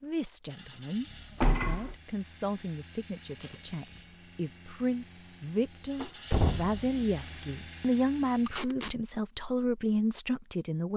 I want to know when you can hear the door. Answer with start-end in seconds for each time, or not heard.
1.4-1.9, 6.0-6.8.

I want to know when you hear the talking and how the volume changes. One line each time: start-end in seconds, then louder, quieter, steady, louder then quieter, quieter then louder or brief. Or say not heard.
0.0-10.9 louder.